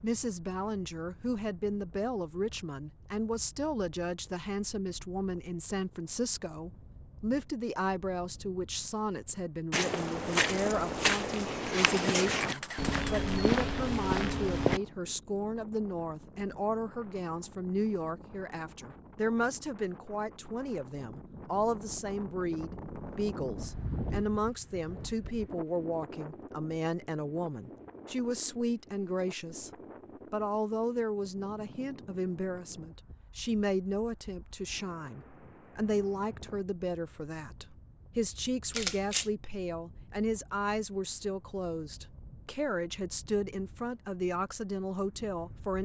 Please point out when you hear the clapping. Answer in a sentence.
The clapping can't be heard in this clip.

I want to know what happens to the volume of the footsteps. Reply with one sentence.
The loudness of the footsteps stays about the same.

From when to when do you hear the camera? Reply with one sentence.
You can hear the camera from 11.8 to 13.3 s and from 38.7 to 39.3 s.